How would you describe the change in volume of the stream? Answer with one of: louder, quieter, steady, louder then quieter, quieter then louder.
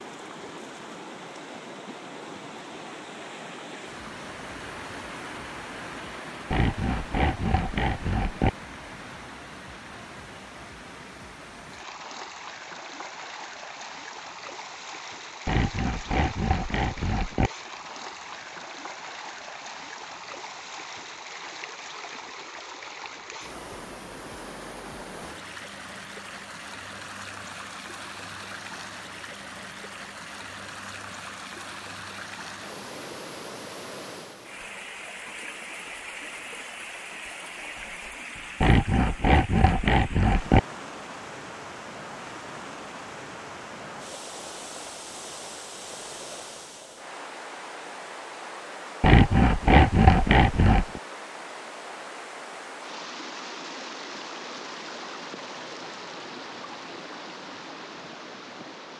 steady.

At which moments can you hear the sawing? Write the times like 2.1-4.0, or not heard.
6.5-8.5, 15.4-17.5, 38.6-40.6, 49.0-51.0.